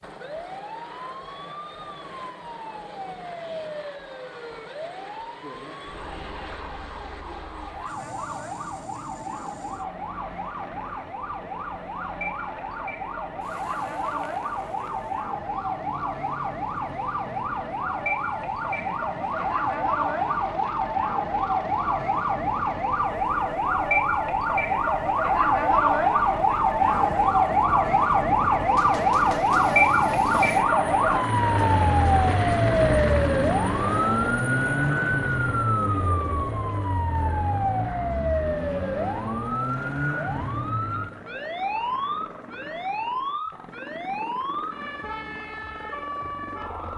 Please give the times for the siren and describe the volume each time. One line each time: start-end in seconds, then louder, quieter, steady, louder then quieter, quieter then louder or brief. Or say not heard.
0.0-46.9 louder then quieter.